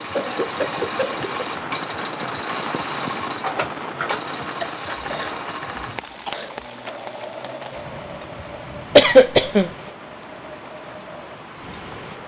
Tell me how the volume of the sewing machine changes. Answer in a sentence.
The loudness of the sewing machine goes down.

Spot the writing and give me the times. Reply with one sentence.
The writing can't be heard in this clip.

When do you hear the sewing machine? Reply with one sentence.
The sewing machine can be heard from 0.0 to 12.2 s.